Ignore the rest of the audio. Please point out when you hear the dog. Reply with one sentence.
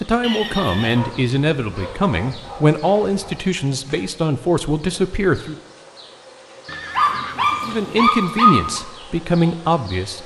The dog can be heard from 0.8 to 3.5 s and from 7.0 to 8.8 s.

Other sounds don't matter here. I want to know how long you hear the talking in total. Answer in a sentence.
You can hear the talking for 8 seconds altogether.